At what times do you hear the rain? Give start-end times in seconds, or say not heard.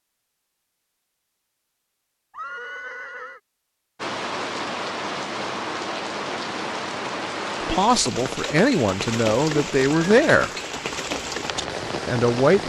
4.0-12.6.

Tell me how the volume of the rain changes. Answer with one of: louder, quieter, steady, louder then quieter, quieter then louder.
steady.